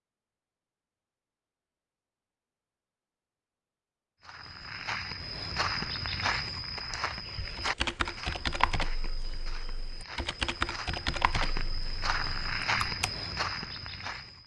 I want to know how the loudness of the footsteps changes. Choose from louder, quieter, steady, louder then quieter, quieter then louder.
quieter then louder.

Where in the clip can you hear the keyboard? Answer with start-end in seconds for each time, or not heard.
7.5-13.1.